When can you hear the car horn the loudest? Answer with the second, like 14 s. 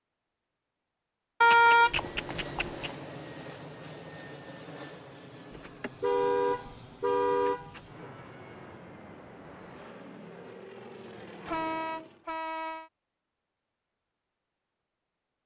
2 s.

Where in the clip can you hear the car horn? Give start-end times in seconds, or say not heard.
1.4-2.9, 5.5-8.1, 11.4-12.9.